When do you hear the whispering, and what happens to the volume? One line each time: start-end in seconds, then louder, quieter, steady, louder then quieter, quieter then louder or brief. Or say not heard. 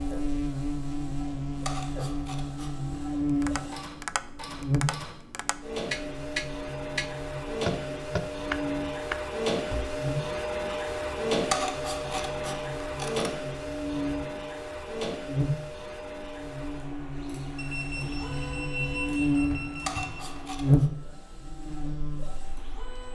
not heard.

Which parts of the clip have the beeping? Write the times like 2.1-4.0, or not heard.
17.6-20.2.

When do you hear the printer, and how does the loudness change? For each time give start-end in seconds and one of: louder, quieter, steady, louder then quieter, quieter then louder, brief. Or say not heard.
0.0-23.1 louder then quieter.